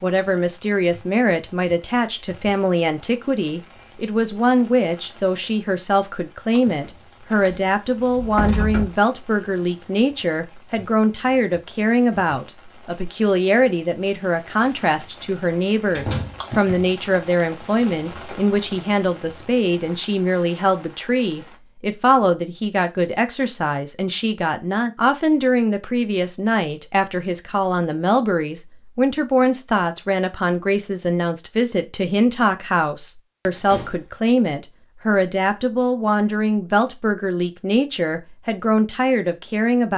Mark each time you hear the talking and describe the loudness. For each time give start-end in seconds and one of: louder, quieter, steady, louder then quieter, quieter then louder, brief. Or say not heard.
0.0-39.9 steady.